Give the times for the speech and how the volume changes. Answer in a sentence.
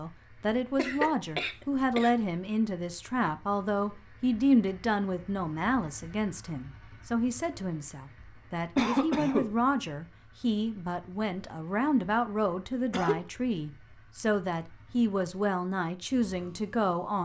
You can hear the speech from 0.0 to 17.2 s, at a steady volume.